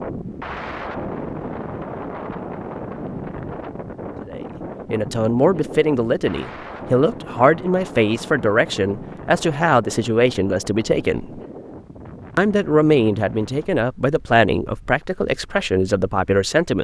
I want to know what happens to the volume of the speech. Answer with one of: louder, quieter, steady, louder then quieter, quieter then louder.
steady.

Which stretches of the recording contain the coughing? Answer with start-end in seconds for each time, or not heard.
not heard.